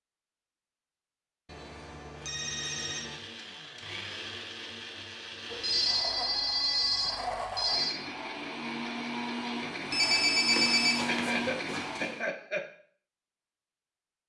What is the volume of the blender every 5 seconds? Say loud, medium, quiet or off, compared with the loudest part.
medium, loud, loud.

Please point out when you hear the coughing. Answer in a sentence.
The coughing can be heard from 11.1 to 12.7 s.